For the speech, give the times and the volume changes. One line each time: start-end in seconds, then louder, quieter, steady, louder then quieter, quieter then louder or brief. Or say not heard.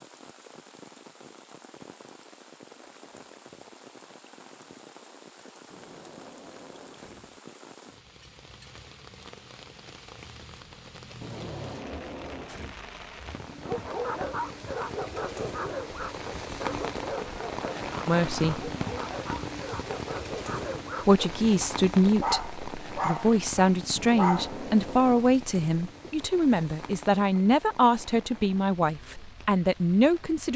18.1-18.7 brief
21.1-30.5 steady.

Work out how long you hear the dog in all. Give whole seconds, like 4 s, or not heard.
11 s.